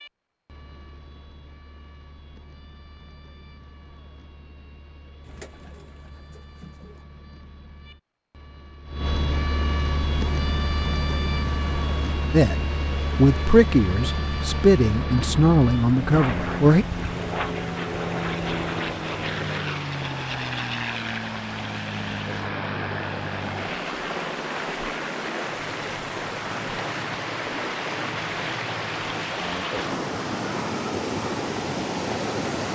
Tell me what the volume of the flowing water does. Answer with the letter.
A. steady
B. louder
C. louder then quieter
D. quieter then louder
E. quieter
B.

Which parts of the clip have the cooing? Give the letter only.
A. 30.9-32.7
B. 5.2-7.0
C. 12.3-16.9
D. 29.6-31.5
B.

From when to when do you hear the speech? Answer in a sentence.
You can hear the speech from 12.3 to 16.9 s.